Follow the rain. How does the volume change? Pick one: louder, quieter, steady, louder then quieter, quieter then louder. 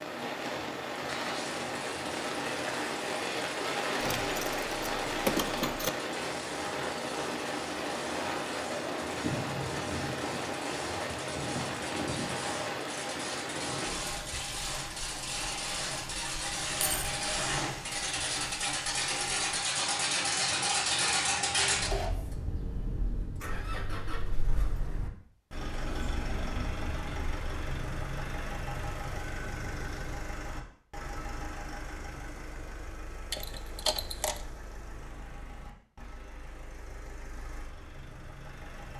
quieter.